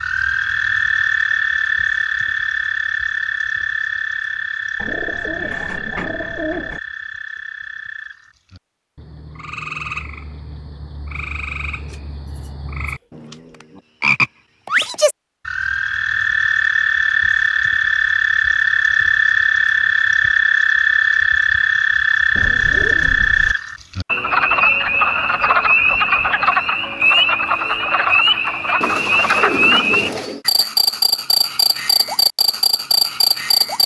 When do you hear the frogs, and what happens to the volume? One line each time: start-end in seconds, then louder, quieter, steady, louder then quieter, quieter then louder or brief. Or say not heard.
0.0-33.8 quieter then louder.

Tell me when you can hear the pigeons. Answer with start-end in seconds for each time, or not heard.
4.8-6.8, 11.8-13.8, 22.4-23.6, 28.8-30.4.